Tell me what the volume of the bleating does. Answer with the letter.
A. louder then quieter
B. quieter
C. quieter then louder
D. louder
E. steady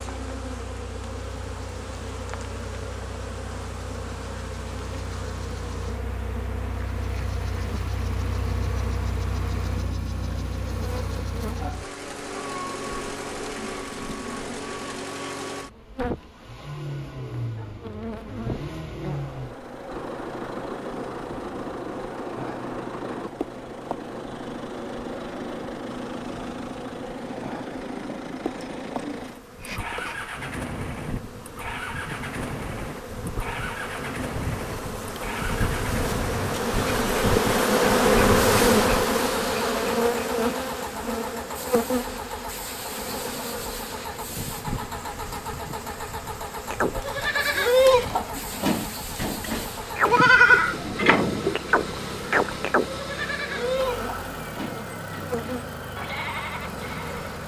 B.